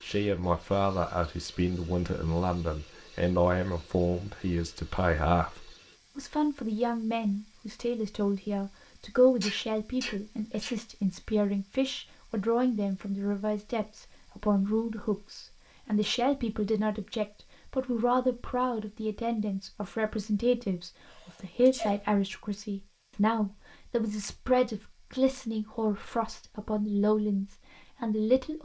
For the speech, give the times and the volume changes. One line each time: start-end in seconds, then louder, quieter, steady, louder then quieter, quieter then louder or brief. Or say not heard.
0.0-28.5 steady.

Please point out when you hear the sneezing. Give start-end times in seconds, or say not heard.
9.4-10.8, 21.1-22.1.